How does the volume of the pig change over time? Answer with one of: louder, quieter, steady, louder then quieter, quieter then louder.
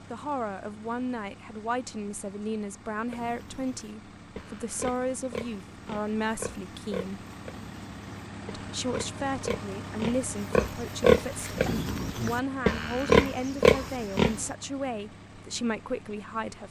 louder.